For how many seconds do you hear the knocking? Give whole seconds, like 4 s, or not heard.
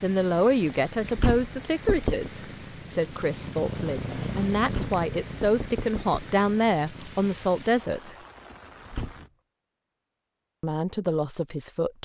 3 s.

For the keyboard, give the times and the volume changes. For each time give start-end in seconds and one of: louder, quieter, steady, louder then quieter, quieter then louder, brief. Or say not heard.
not heard.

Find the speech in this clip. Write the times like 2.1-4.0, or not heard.
0.0-8.2, 10.6-11.9.